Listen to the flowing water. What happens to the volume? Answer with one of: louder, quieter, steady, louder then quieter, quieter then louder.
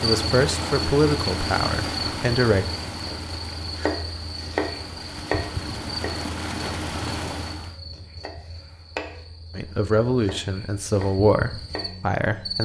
quieter then louder.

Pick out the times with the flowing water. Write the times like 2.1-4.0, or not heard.
0.0-7.8.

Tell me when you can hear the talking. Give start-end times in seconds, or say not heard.
0.0-2.7, 9.6-12.6.